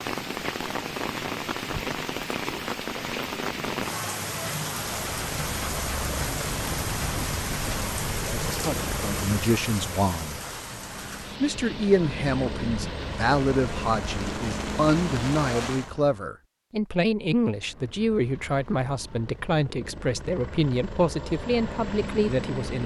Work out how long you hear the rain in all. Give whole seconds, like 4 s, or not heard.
16 s.